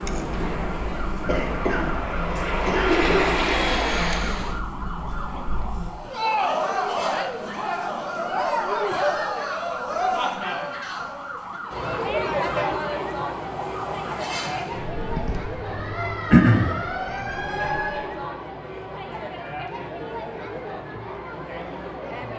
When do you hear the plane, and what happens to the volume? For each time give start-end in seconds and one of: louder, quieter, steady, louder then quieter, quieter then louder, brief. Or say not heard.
0.0-4.6 louder.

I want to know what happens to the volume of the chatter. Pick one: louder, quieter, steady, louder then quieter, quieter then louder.
louder then quieter.